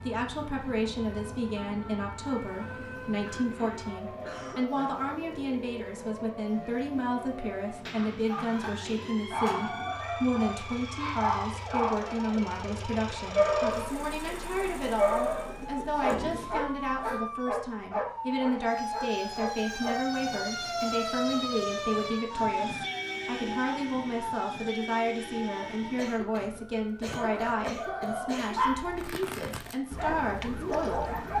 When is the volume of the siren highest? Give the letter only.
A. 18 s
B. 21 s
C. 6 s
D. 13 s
B.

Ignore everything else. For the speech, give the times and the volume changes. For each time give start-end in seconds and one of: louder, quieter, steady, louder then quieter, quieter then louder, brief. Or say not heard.
0.0-31.0 steady.